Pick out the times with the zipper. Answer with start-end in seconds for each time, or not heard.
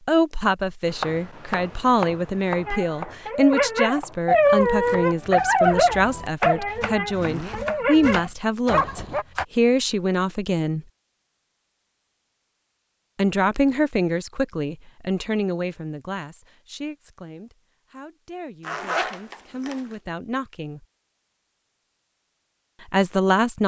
7.2-7.7, 18.6-19.9.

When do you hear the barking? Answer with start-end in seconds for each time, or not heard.
2.6-9.2.